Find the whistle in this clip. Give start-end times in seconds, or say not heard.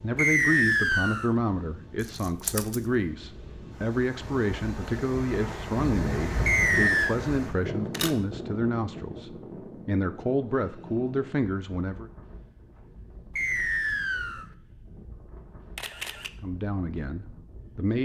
0.1-1.3, 6.5-7.2, 13.3-14.4.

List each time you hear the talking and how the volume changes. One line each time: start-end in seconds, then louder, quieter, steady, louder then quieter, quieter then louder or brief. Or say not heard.
0.0-12.1 steady
16.4-18.0 brief.